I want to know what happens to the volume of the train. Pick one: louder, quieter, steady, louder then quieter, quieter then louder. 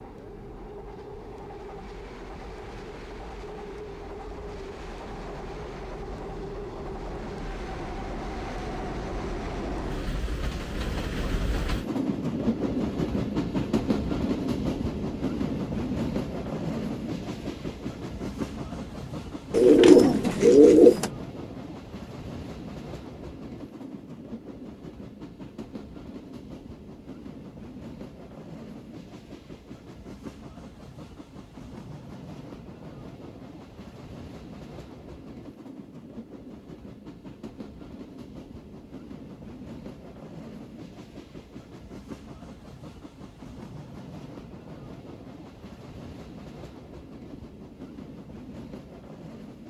louder then quieter.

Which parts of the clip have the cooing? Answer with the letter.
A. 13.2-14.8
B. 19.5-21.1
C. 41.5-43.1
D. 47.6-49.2
B.